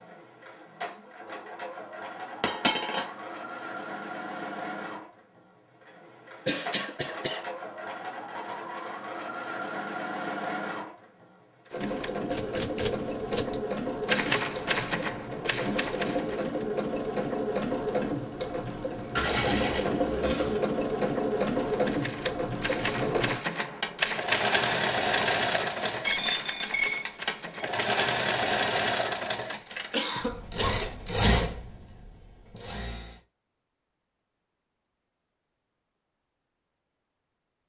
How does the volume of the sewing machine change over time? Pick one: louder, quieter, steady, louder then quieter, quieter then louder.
louder.